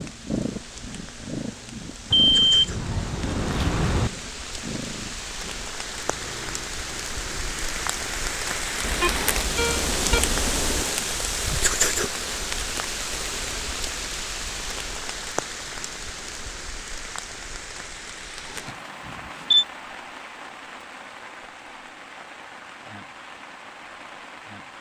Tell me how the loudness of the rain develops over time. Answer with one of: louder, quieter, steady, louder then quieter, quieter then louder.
louder then quieter.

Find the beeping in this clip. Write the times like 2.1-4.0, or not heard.
2.1-4.1, 8.8-10.8, 18.6-19.6.